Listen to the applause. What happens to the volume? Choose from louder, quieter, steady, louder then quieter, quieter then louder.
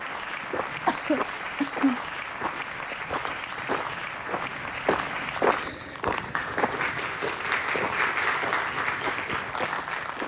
louder.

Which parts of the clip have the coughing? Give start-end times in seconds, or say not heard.
0.8-2.0.